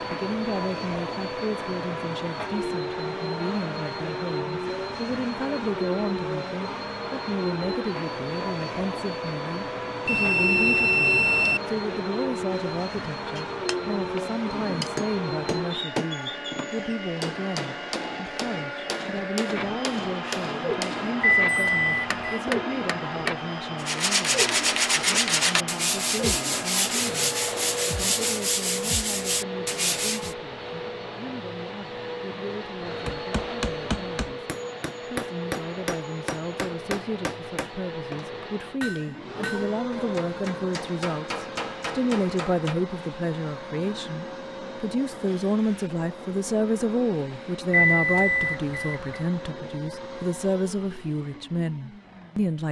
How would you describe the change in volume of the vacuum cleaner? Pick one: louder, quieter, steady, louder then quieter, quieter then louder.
quieter.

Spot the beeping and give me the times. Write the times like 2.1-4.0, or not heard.
10.1-11.6, 21.2-22.4, 47.7-49.2.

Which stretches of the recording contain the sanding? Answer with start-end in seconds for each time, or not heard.
23.8-30.4.